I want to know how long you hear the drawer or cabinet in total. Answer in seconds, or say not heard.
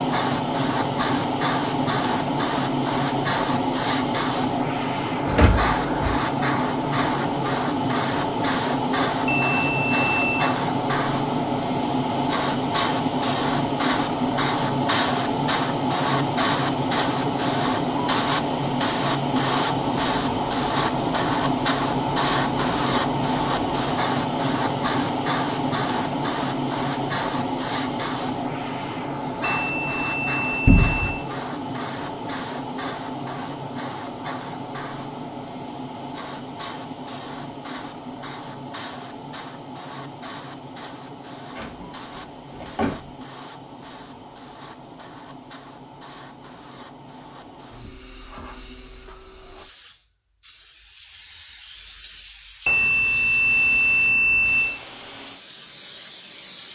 3 s.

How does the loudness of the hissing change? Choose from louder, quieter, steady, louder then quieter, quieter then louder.
quieter.